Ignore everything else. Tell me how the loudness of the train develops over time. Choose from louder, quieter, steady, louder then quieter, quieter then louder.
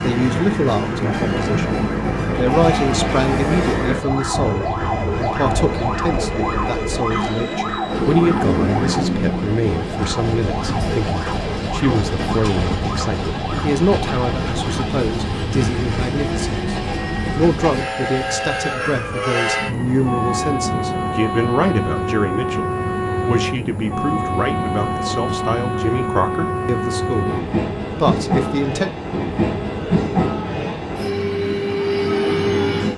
steady.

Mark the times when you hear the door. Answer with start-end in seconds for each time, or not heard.
not heard.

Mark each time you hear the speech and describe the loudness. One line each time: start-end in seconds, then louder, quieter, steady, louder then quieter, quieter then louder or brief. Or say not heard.
0.0-28.9 steady.